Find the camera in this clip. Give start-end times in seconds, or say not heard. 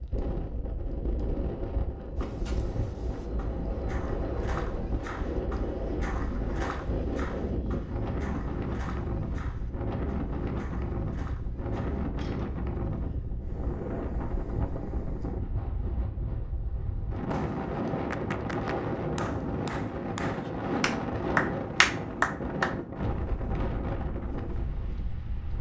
not heard.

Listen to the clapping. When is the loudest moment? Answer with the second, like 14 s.
22 s.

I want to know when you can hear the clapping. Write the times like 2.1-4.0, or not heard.
17.3-22.8.